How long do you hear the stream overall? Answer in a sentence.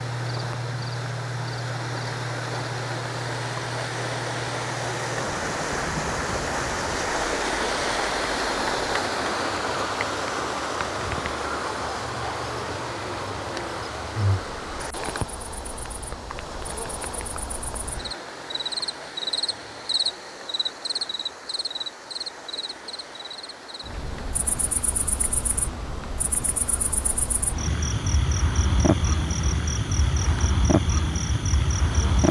The stream can be heard for 32 seconds in total.